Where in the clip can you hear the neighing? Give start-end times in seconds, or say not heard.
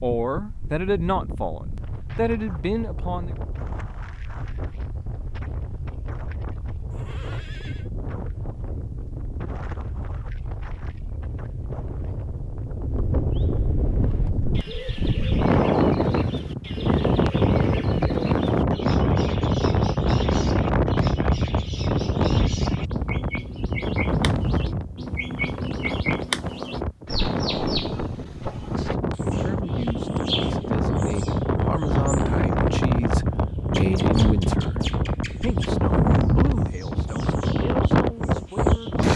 6.9-7.9.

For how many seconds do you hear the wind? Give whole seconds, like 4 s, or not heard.
39 s.